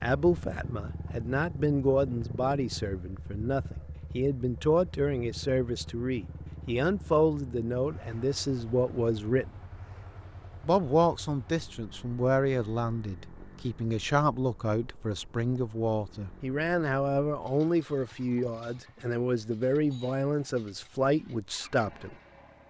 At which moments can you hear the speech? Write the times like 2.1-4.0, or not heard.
0.0-9.5, 10.7-22.1.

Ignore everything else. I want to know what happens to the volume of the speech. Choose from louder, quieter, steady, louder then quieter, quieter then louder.
steady.